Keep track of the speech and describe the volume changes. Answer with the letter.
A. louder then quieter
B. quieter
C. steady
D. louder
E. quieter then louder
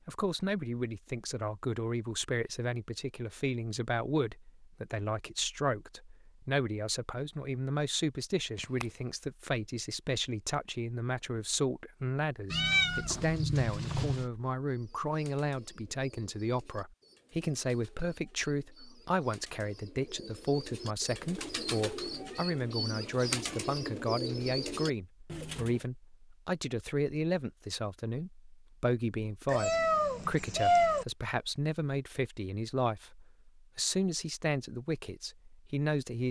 C.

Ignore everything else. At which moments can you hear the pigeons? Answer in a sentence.
The pigeons can be heard from 14.7 to 25.9 s.